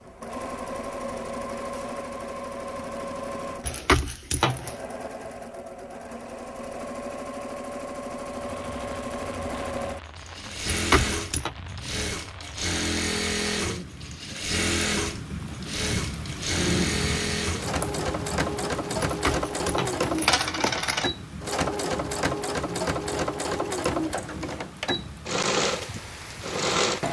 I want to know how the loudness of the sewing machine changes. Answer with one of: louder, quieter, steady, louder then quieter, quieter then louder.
louder.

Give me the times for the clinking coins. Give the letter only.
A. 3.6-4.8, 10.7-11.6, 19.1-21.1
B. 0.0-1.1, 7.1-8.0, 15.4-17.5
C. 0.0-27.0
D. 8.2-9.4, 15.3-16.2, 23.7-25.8
A.